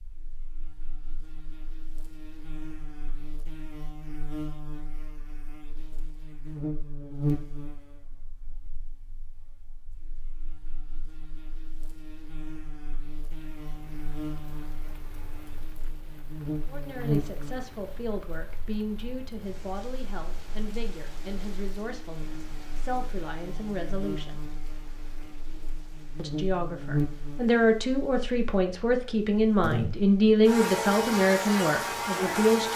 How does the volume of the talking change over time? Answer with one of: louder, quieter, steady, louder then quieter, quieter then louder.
louder.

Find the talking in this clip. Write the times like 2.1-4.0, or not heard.
16.6-24.4, 26.1-32.7.